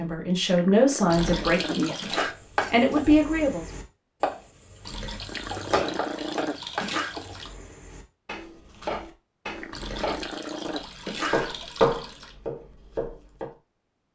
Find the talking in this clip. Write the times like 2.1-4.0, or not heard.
0.0-3.6.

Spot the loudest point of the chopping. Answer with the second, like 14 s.
12 s.